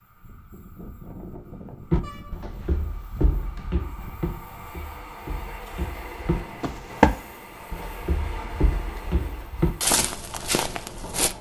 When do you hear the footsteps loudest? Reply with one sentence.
The loudest moment of the footsteps is at 7 seconds.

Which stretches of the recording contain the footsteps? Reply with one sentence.
The footsteps can be heard from 1.9 to 11.3 s.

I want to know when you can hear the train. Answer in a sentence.
You can hear the train from 0.0 to 11.3 s.